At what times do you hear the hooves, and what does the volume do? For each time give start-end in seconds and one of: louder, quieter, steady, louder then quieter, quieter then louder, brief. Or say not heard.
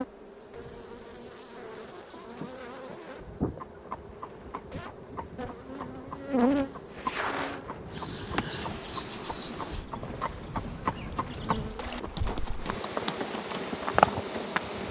3.1-14.8 louder.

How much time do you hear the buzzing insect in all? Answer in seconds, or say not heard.
15 s.